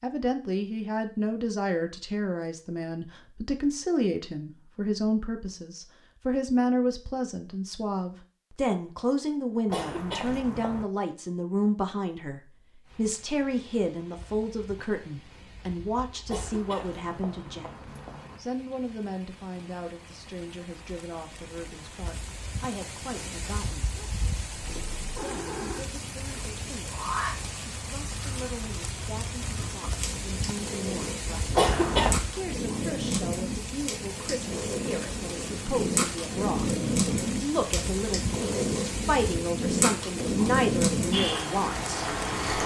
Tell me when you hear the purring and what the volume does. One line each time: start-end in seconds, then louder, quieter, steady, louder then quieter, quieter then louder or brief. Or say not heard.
24.5-42.6 louder.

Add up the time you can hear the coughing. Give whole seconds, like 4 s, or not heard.
4 s.